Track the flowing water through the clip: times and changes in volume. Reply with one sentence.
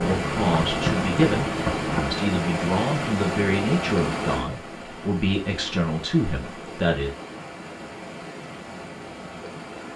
The flowing water can be heard from 0.0 to 9.9 s, getting quieter.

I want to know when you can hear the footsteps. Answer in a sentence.
The footsteps can be heard from 0.0 to 2.0 s.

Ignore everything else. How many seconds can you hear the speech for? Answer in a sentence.
You can hear the speech for 7 seconds altogether.